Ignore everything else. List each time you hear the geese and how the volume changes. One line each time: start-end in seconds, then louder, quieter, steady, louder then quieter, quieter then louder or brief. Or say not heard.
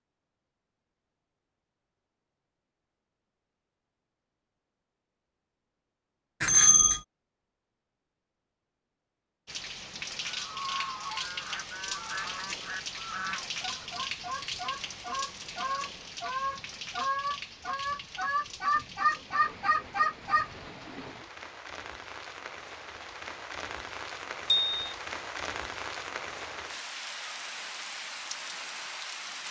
10.2-21.1 louder.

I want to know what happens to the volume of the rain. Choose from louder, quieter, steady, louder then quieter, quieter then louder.
quieter then louder.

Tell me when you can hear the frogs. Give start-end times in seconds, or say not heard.
not heard.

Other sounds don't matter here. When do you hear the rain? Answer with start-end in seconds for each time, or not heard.
9.4-29.4.